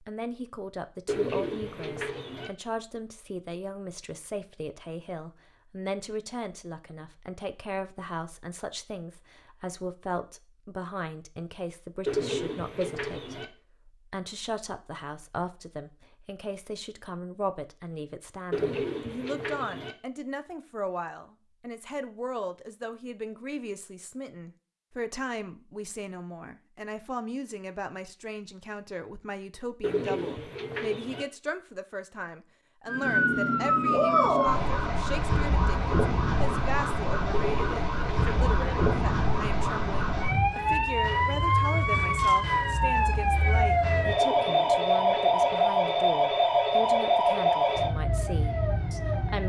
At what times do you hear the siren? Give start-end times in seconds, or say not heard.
32.9-49.4.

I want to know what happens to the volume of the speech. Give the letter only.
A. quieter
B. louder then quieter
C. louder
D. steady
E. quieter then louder
D.